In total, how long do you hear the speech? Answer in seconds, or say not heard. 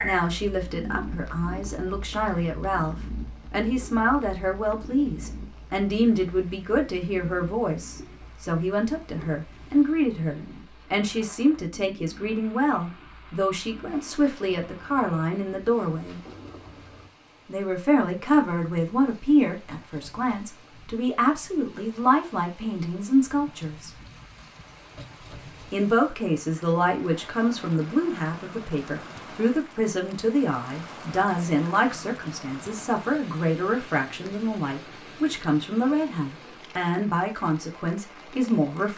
36 s.